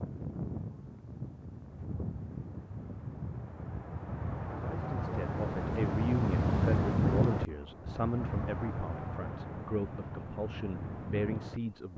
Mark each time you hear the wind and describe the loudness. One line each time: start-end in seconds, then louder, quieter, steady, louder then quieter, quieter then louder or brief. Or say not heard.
0.0-11.9 louder then quieter.